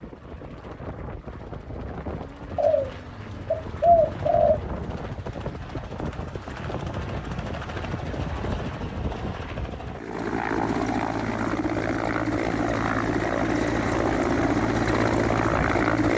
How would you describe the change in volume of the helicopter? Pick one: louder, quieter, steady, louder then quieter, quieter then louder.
louder.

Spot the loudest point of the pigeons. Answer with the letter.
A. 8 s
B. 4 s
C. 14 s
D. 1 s
B.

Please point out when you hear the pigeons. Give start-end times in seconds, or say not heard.
2.5-4.6.